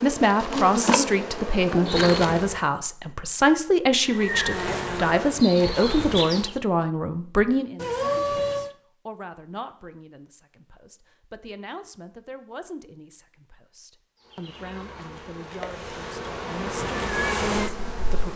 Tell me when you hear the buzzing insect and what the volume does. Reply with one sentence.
You can hear the buzzing insect briefly from 0.0 to 2.6 s; briefly from 4.0 to 6.5 s; and from 14.2 to 18.3 s, getting louder.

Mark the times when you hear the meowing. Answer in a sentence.
You can hear the meowing from 7.8 to 8.7 s.